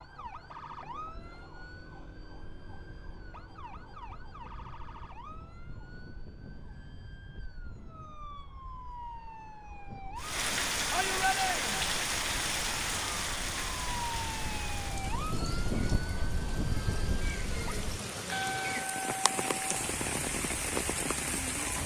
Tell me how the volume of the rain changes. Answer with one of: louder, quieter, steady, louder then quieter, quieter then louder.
quieter then louder.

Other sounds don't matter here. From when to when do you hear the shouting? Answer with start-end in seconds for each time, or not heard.
10.9-11.9.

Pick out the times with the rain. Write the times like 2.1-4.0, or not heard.
10.2-21.8.